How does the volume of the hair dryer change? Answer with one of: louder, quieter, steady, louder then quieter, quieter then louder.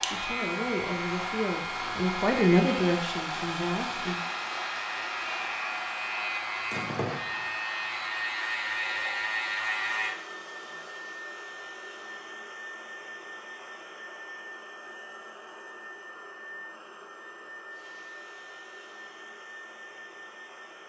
quieter.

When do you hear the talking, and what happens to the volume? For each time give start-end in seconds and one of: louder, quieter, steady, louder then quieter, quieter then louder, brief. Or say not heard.
0.0-4.2 louder then quieter.